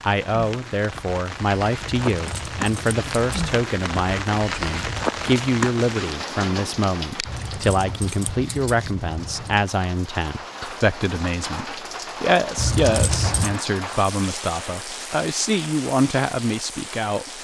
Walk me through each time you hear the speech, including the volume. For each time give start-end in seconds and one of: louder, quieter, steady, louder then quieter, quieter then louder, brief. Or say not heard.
0.0-17.3 steady.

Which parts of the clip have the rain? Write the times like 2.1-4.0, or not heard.
0.0-17.3.